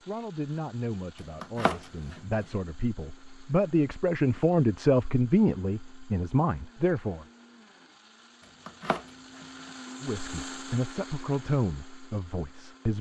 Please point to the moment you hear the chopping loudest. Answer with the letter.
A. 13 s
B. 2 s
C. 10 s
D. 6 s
B.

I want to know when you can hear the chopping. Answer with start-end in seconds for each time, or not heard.
1.4-2.2, 8.7-9.4.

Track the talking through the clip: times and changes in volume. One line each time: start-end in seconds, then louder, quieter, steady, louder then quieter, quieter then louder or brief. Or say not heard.
0.1-7.2 louder then quieter
10.0-12.9 brief.